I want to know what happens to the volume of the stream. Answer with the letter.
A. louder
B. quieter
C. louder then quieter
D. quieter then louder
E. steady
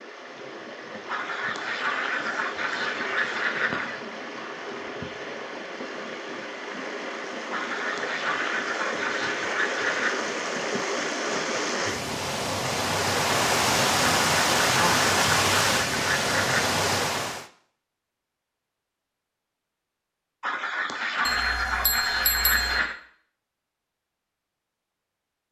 A.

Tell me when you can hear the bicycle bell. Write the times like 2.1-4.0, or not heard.
21.2-22.8.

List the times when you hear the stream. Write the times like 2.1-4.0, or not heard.
0.0-17.4.